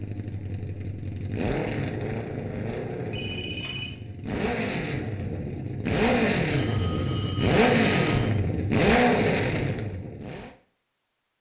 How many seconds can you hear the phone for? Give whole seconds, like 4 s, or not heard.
3 s.